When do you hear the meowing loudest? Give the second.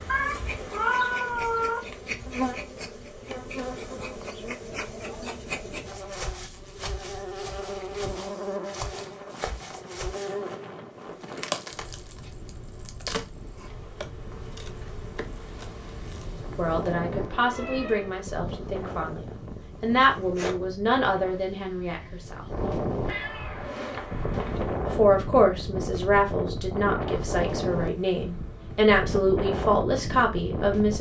1 s.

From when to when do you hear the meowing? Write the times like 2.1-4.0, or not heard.
0.1-1.9, 17.1-18.1, 23.1-24.6.